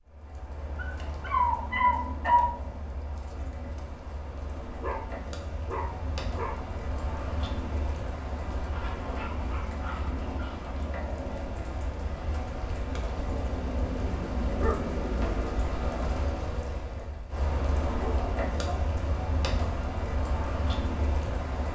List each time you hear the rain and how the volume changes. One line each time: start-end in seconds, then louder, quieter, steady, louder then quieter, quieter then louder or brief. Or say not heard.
0.0-21.6 louder.